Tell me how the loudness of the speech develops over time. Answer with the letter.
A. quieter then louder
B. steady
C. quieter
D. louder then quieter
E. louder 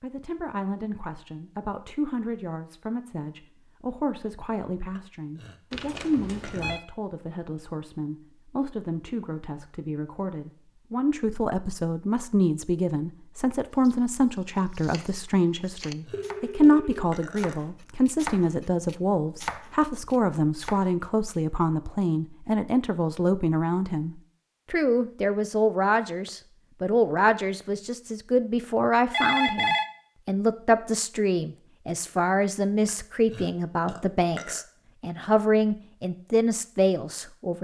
E.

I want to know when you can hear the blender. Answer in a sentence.
You can't hear the blender here.